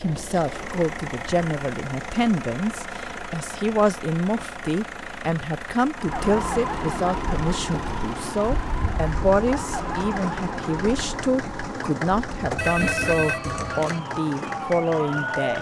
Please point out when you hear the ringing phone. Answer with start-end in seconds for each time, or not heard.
12.6-14.0.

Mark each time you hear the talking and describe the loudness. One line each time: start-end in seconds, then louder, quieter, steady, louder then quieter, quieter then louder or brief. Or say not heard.
0.0-15.5 steady.